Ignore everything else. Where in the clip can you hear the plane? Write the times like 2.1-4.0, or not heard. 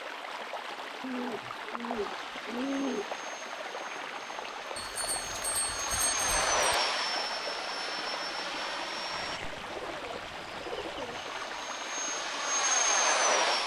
1.9-9.4, 11.1-13.6.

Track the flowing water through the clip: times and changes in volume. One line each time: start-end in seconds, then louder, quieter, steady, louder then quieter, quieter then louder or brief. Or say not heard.
0.0-13.6 steady.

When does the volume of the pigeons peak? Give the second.
3 s.